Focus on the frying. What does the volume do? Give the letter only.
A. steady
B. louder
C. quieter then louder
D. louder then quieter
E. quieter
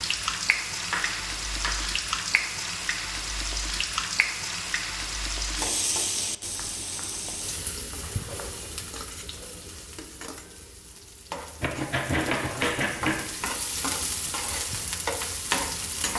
C.